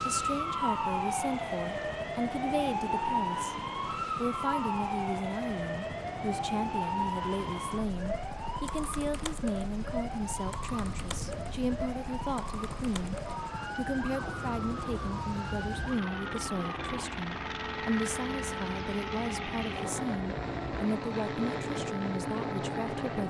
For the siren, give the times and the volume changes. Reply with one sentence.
The siren can be heard from 0.0 to 23.2 s, getting quieter.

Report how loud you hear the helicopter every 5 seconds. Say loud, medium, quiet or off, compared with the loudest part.
medium, medium, medium, loud, loud.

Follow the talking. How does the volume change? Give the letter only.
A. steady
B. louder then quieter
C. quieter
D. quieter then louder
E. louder
A.